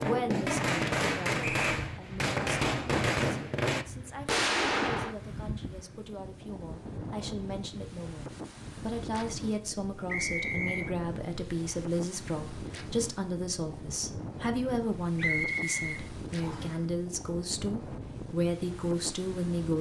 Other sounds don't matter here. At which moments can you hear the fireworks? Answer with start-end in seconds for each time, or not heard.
0.0-5.2.